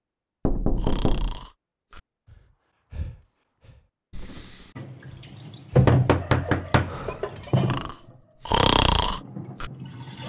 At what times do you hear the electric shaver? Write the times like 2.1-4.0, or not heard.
not heard.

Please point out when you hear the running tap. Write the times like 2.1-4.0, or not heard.
4.8-10.2.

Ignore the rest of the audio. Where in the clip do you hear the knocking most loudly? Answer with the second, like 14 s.
6 s.